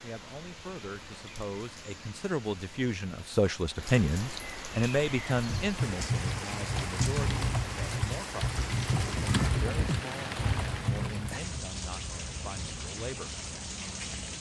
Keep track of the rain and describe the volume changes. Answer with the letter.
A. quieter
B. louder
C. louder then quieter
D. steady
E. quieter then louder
B.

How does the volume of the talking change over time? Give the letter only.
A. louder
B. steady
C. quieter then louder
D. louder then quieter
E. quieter
D.